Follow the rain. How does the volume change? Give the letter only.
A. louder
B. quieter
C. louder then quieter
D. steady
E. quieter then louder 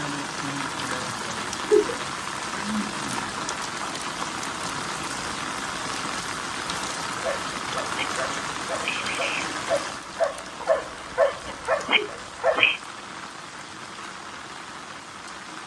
B.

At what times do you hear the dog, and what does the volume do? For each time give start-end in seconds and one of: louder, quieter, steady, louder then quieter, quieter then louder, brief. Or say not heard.
7.2-12.8 louder.